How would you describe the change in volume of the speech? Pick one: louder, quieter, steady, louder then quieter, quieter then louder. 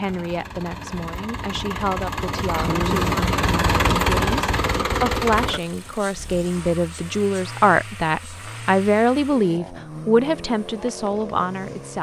louder.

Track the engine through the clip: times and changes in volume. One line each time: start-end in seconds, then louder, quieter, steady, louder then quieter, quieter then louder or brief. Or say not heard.
0.0-11.9 louder then quieter.